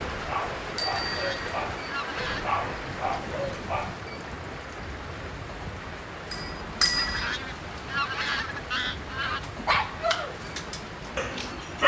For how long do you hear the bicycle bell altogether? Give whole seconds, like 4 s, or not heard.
2 s.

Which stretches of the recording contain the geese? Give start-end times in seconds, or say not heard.
0.9-2.6, 6.9-9.5.